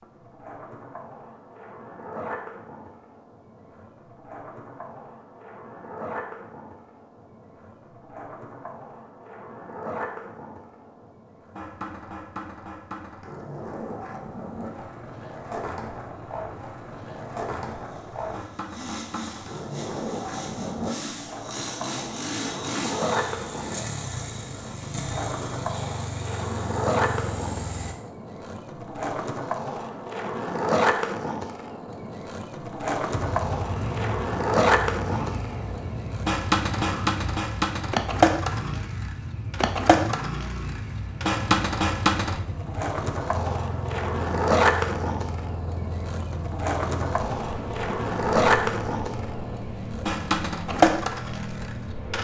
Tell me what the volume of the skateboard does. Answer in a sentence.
The loudness of the skateboard goes up.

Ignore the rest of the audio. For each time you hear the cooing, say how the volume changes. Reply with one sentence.
The cooing can't be heard in this clip.